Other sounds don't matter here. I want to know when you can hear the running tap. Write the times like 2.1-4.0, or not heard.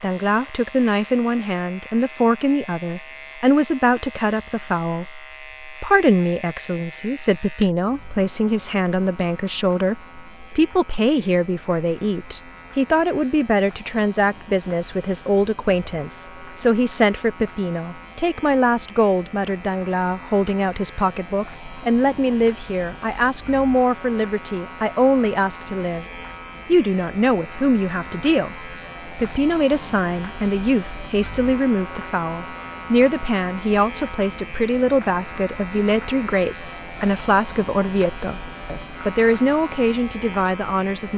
not heard.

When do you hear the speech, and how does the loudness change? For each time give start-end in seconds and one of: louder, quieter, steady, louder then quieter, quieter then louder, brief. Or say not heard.
0.0-26.1 steady
26.6-41.1 steady.